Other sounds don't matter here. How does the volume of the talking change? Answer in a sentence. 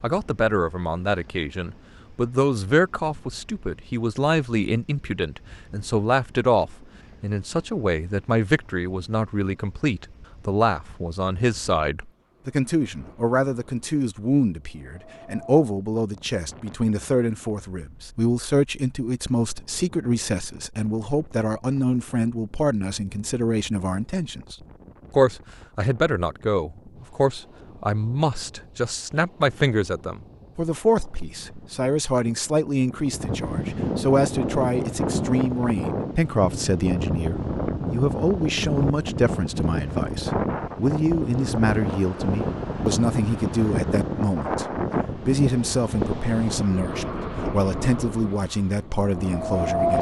The loudness of the talking stays about the same.